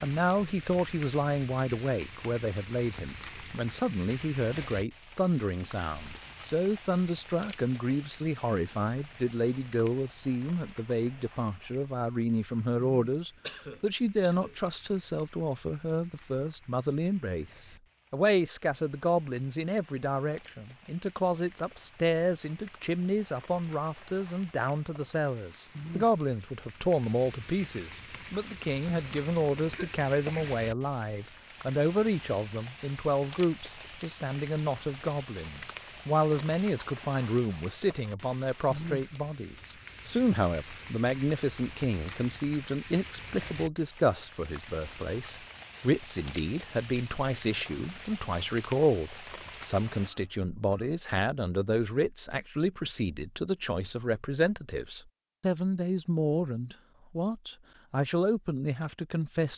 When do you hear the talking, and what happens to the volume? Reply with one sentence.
The talking can be heard from 0.0 to 59.5 s, at a steady volume.